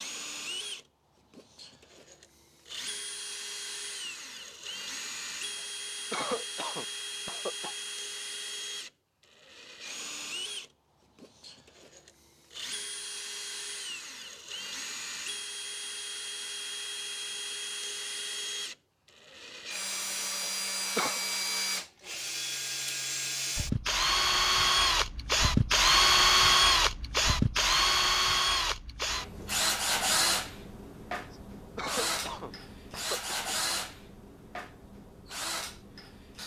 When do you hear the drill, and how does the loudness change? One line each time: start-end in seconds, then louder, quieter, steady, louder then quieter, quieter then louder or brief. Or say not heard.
0.0-36.4 louder then quieter.